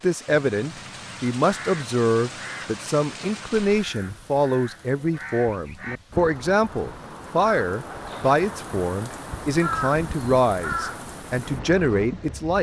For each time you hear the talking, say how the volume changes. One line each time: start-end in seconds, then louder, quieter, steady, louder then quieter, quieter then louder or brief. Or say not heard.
0.0-12.5 steady.